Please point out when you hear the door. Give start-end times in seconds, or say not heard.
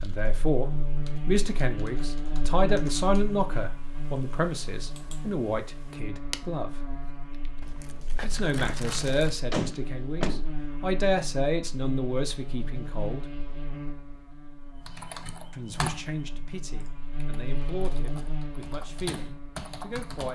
9.5-10.4.